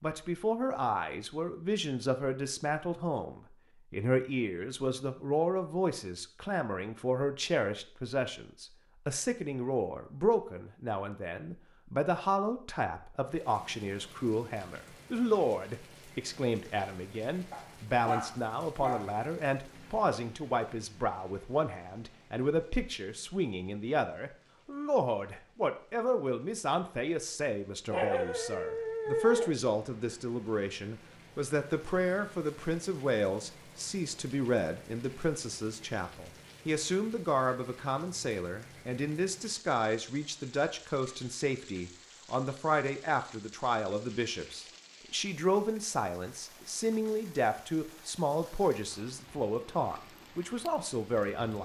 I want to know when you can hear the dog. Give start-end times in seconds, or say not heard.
17.5-19.1, 27.9-29.5.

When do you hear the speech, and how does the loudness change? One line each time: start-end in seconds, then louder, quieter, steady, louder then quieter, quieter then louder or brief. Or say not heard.
0.0-51.6 steady.